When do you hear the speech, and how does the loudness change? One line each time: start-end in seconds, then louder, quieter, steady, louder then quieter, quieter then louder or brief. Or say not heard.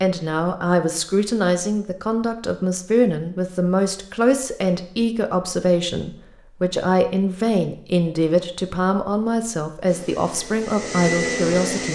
0.0-11.9 steady.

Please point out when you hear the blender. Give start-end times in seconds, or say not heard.
9.8-11.9.